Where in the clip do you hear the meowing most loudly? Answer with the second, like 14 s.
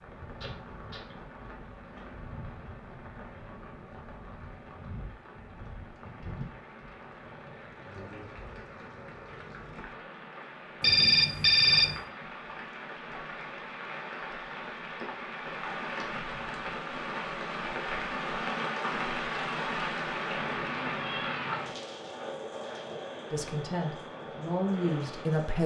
21 s.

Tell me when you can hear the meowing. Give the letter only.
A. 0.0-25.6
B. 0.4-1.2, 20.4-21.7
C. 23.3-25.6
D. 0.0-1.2
B.